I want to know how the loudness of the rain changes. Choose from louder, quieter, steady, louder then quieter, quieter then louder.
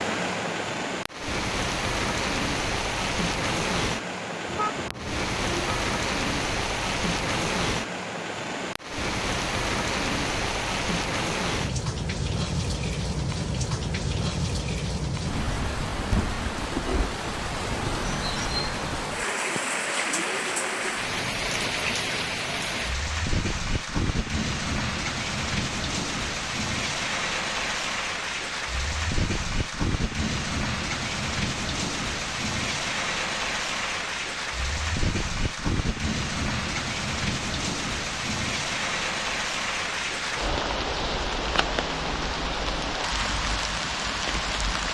steady.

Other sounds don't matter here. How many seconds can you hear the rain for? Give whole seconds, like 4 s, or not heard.
45 s.